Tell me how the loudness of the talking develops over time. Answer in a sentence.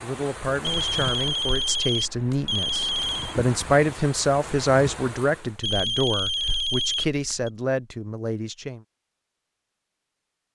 The volume of the talking goes up, then down.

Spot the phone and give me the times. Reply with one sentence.
You can hear the phone from 0.6 to 3.4 s and from 5.6 to 7.5 s.